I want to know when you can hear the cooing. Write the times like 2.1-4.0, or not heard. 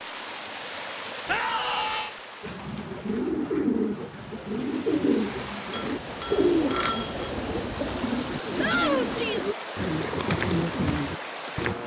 2.4-11.8.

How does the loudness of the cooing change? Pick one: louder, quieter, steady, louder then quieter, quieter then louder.
steady.